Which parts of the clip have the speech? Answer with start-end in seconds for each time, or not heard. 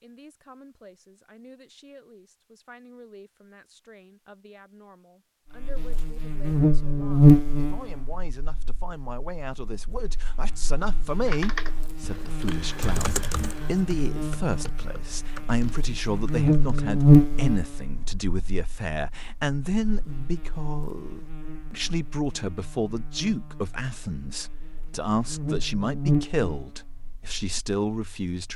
0.0-28.5.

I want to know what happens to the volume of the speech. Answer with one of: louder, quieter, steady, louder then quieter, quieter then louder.
louder.